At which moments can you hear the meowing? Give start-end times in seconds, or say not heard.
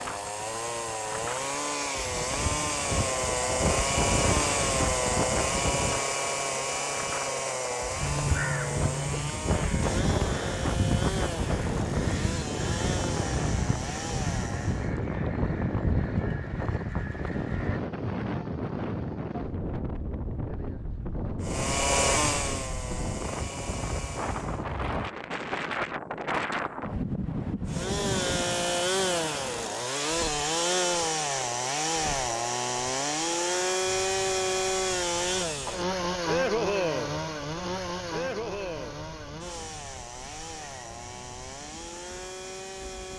not heard.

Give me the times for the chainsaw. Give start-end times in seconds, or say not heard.
0.0-14.9, 21.4-24.6, 27.6-43.1.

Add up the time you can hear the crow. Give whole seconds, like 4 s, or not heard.
10 s.